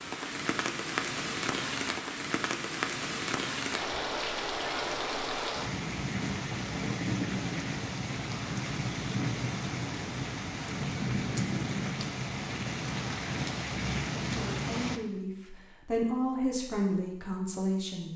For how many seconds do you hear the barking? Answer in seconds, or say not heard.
not heard.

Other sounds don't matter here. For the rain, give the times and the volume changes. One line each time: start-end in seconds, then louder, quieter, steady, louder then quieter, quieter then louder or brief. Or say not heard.
0.0-15.0 steady.